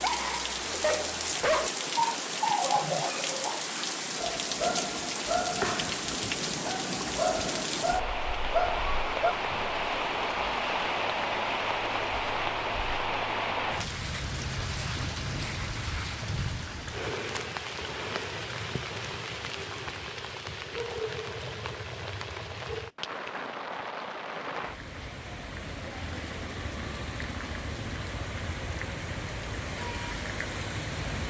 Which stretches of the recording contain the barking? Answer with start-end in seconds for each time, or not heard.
0.0-9.3.